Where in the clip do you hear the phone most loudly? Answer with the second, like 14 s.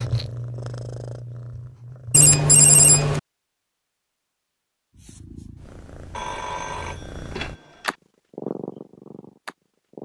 3 s.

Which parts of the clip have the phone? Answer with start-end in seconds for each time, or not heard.
2.1-3.2, 6.2-8.0.